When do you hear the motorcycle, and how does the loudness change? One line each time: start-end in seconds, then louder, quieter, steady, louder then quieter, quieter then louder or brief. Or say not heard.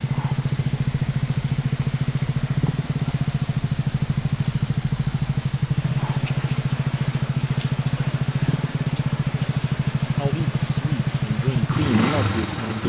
0.0-12.8 steady.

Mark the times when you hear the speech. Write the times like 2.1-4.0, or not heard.
10.2-12.8.